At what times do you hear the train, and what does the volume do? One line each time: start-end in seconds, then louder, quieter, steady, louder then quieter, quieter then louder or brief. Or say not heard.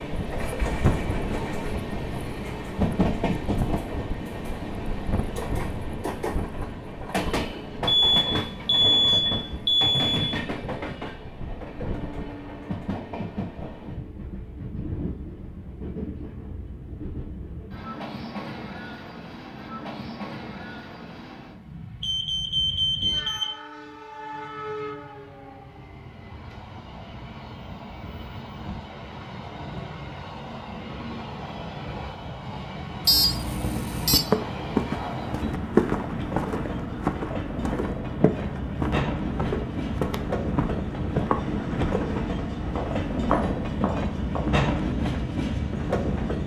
0.0-46.4 quieter then louder.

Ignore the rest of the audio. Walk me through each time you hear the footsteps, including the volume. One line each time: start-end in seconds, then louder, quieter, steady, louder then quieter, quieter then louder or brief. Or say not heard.
34.1-44.6 quieter.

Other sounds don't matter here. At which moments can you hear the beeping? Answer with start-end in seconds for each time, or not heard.
7.8-10.3, 22.0-23.5, 33.0-34.2.